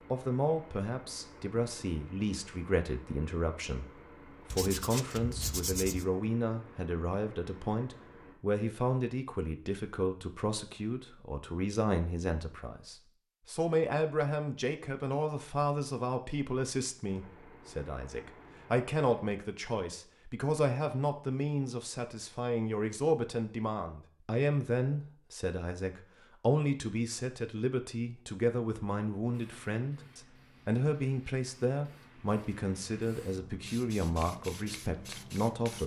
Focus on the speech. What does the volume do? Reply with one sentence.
The loudness of the speech stays about the same.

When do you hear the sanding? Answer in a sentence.
The sanding can be heard from 4.5 to 6.0 s.